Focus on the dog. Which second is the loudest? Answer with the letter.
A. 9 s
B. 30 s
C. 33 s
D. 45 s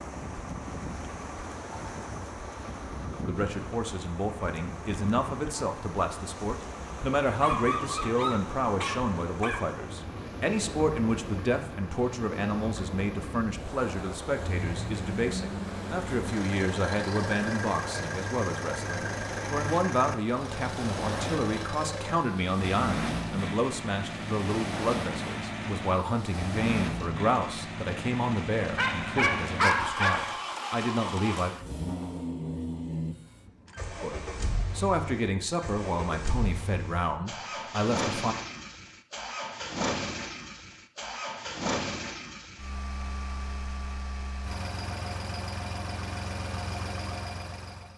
B.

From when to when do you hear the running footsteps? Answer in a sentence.
You can't hear the running footsteps here.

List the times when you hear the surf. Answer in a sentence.
The surf can be heard from 0.0 to 27.1 s.